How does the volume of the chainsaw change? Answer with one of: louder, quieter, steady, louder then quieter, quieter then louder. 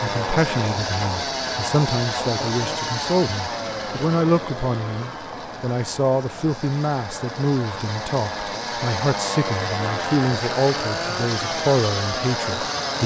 quieter then louder.